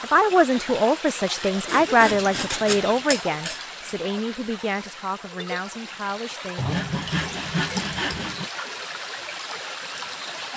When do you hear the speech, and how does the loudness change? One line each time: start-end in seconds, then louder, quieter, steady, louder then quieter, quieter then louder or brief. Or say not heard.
0.0-6.7 quieter.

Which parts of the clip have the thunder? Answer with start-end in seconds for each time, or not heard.
not heard.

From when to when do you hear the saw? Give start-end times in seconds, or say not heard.
1.6-3.6, 6.5-8.5.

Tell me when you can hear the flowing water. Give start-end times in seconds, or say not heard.
0.0-10.5.